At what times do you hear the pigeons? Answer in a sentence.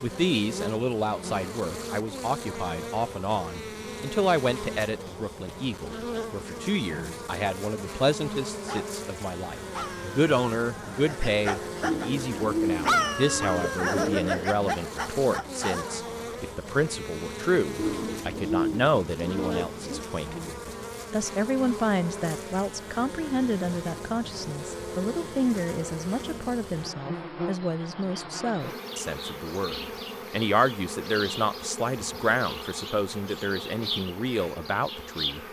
You can hear the pigeons from 11.8 to 14.6 s and from 17.8 to 20.1 s.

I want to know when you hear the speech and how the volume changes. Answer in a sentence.
The speech can be heard from 0.0 to 35.4 s, at a steady volume.